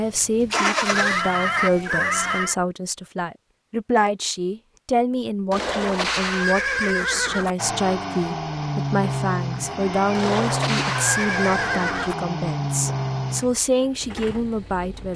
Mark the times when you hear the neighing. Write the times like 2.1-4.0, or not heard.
0.9-2.5, 5.5-7.5, 10.2-12.2.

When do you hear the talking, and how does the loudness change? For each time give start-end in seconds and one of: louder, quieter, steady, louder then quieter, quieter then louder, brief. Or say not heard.
0.0-15.1 steady.